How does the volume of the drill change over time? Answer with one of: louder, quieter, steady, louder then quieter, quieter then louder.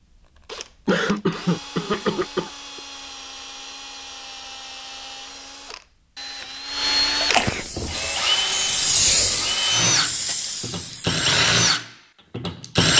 louder.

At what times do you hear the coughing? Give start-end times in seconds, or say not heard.
0.8-2.8, 7.2-8.2.